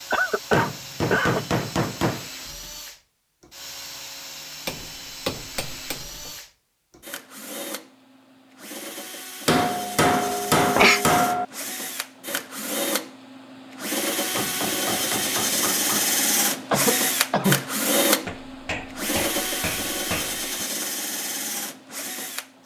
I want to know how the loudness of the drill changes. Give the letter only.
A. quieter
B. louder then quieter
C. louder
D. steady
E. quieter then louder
C.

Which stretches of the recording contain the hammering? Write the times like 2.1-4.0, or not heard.
0.5-2.2, 4.7-6.3, 9.4-11.4, 14.3-16.1, 18.2-20.5.